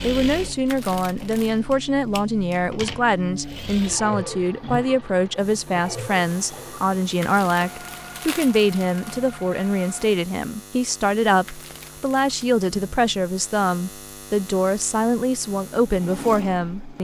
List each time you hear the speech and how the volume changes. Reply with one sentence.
The speech can be heard from 0.0 to 16.9 s, at a steady volume.